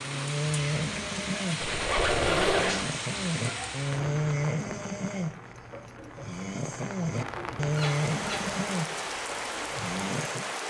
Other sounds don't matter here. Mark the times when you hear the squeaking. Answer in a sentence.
The squeaking can be heard from 1.6 to 2.9 s and from 7.7 to 8.7 s.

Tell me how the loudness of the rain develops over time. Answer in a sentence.
The volume of the rain goes down, then up.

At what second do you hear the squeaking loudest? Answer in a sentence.
The loudest moment of the squeaking is at 2 seconds.